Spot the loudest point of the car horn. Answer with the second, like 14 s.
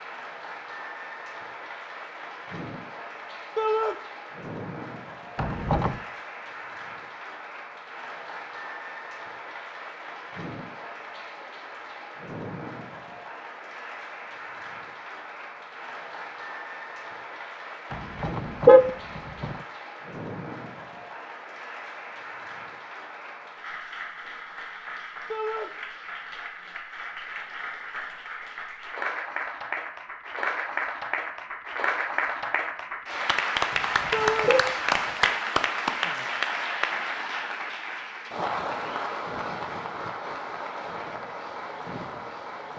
19 s.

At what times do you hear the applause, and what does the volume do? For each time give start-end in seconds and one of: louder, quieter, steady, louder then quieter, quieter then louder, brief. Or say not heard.
0.0-42.7 louder.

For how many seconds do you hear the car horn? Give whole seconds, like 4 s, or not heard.
3 s.